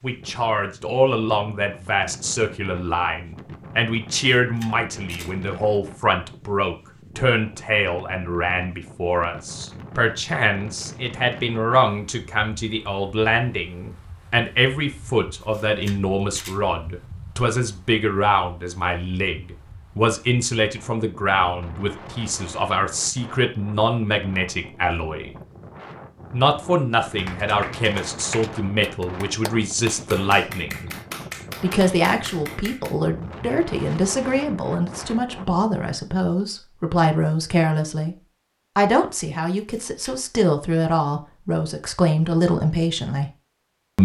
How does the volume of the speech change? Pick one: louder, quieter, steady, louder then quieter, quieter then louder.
steady.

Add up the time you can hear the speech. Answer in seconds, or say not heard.
41 s.